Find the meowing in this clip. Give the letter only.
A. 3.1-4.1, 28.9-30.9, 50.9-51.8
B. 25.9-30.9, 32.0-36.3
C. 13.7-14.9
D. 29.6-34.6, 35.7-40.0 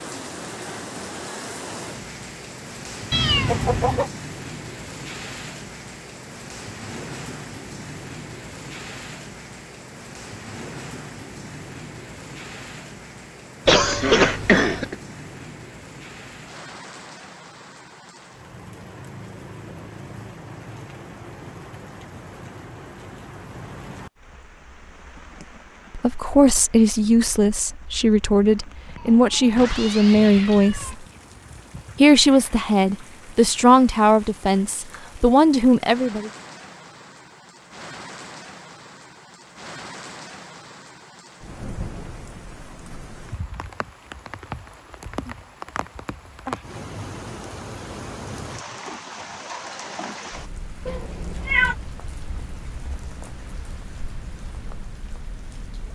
A.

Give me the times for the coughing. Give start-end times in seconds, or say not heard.
13.7-14.9.